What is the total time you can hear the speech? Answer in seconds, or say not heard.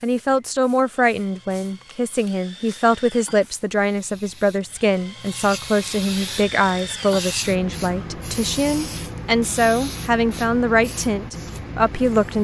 12 s.